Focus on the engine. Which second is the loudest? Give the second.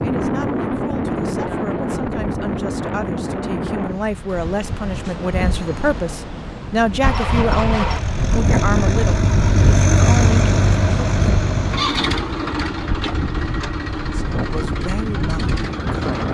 10 s.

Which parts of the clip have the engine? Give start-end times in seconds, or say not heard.
7.0-16.2.